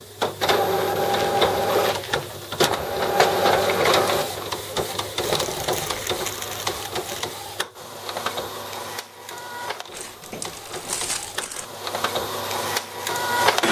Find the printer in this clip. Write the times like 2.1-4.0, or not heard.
0.0-13.6.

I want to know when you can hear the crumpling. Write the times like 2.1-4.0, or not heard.
0.9-2.5, 5.2-7.2, 9.9-11.7.